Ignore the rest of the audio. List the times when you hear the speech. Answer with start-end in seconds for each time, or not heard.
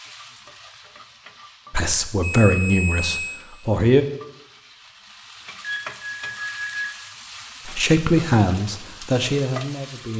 1.7-4.0, 7.7-10.1.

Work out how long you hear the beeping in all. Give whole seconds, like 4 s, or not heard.
3 s.